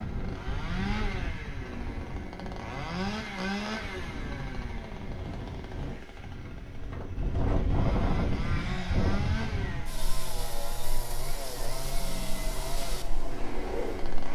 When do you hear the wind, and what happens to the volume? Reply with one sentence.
You can hear the wind from 0.0 to 14.2 s, getting louder then quieter.